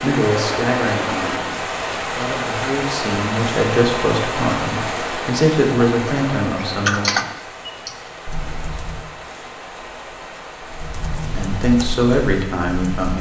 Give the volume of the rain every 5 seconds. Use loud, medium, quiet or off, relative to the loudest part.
loud, medium, quiet.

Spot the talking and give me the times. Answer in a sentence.
The talking can be heard from 0.0 to 7.0 s and from 11.2 to 13.1 s.